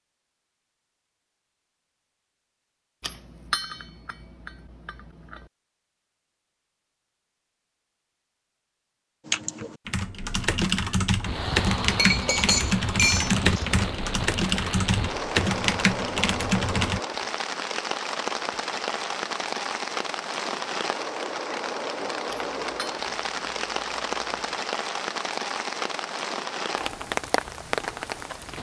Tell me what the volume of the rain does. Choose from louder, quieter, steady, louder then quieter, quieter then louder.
steady.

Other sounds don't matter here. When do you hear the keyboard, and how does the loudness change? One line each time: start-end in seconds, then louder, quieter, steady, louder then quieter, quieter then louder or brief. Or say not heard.
9.2-17.0 steady.